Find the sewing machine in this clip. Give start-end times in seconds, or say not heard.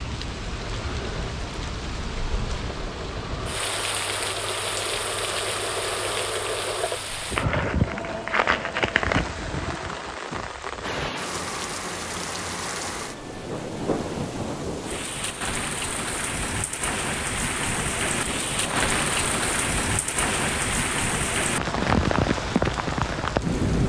0.1-10.3.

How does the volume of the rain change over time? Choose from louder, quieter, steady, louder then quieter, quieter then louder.
louder.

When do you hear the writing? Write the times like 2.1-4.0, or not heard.
not heard.